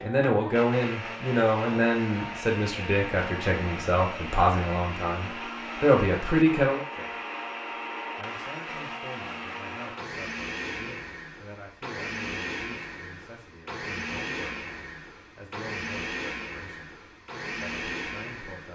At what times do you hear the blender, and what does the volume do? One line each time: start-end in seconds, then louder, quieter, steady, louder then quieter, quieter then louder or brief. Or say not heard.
0.0-18.7 steady.